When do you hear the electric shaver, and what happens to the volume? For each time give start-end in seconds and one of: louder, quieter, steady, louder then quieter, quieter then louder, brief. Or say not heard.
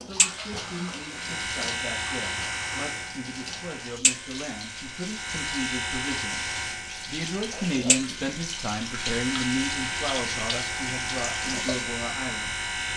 0.0-12.9 steady.